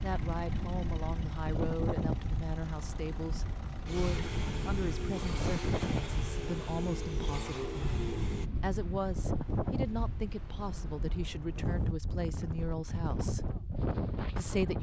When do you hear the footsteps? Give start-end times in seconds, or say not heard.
not heard.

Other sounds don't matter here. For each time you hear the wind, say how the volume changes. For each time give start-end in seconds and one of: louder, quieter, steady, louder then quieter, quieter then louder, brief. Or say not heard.
0.0-14.7 steady.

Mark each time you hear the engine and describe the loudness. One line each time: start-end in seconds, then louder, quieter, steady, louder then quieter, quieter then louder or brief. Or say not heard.
0.0-8.5 louder.